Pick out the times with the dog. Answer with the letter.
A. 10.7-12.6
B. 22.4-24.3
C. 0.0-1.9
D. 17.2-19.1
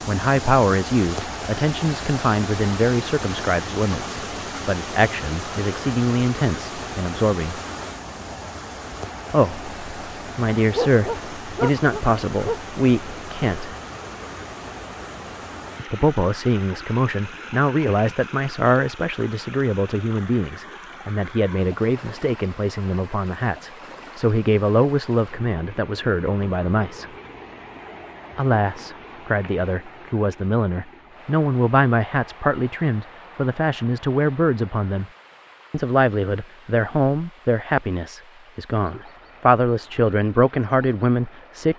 A.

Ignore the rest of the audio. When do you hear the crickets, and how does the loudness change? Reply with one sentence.
You can't hear the crickets here.